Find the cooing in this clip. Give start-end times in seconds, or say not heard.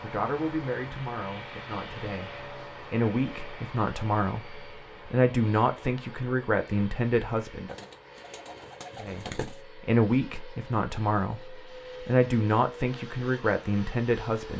7.7-9.6.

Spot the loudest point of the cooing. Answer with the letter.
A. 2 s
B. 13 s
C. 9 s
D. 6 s
C.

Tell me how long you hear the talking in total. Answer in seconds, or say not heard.
13 s.